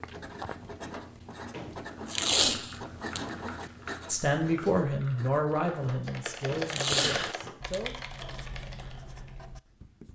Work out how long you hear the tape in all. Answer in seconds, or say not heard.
3 s.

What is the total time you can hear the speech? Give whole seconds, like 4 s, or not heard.
4 s.